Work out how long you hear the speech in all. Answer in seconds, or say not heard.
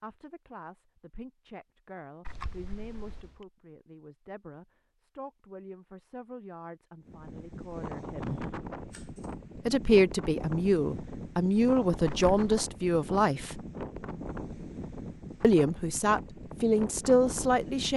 15 s.